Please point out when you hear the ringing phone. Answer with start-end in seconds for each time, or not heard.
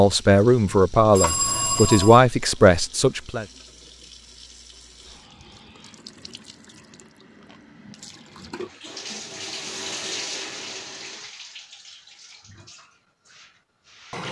1.1-2.2.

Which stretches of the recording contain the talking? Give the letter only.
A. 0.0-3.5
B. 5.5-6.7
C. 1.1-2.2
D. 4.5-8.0
A.